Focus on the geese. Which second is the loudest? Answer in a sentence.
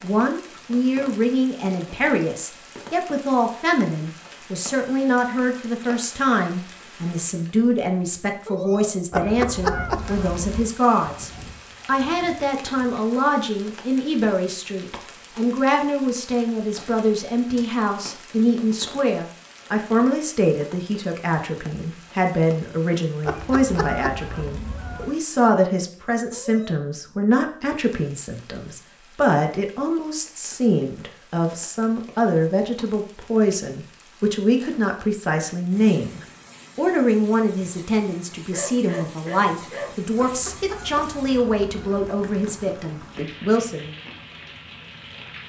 The loudest moment of the geese is at 10 seconds.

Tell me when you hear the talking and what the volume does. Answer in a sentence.
The talking can be heard from 0.0 to 44.0 s, at a steady volume.